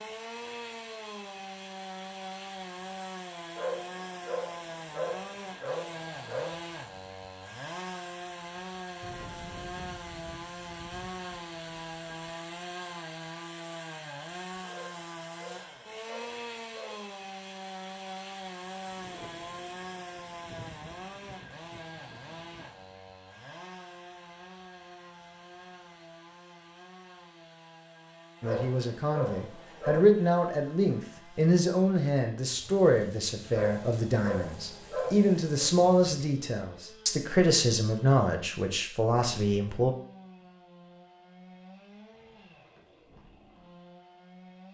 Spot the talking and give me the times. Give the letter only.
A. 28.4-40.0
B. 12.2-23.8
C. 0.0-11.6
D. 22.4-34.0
A.